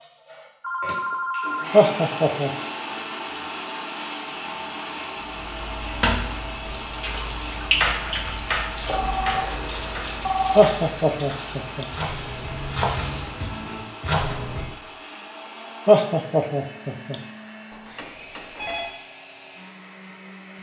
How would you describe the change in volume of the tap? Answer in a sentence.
The loudness of the tap goes down.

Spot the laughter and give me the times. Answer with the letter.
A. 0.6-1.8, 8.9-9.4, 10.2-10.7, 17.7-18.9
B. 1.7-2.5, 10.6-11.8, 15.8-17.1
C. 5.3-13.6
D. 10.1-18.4
B.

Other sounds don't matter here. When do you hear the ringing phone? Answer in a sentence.
The ringing phone can be heard from 0.6 to 1.8 s, from 8.9 to 9.4 s, from 10.2 to 10.7 s and from 17.7 to 18.9 s.